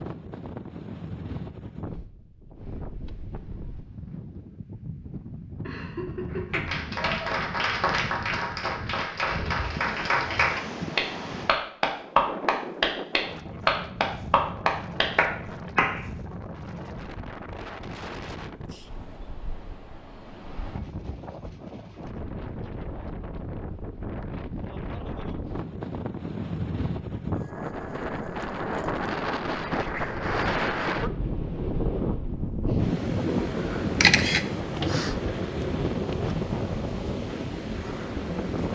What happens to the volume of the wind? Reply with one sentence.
The loudness of the wind goes up.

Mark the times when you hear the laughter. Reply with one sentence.
You can hear the laughter from 5.6 to 7.0 s.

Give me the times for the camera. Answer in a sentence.
The camera can be heard from 34.0 to 34.9 s.